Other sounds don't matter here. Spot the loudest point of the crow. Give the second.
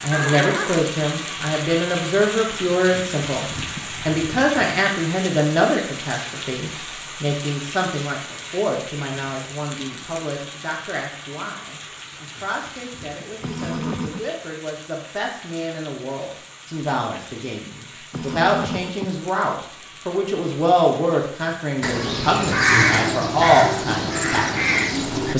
23 s.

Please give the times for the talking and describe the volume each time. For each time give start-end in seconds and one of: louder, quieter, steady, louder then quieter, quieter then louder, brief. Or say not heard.
0.0-25.3 quieter then louder.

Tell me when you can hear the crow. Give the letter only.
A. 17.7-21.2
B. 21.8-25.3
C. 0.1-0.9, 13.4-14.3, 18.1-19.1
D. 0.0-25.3
B.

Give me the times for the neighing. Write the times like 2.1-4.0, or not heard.
0.1-0.9, 13.4-14.3, 18.1-19.1.